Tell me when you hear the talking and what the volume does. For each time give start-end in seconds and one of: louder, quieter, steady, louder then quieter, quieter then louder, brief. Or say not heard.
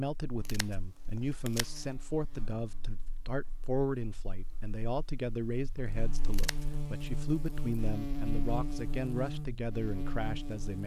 0.0-10.8 steady.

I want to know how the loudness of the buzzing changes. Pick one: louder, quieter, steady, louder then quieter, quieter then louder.
quieter then louder.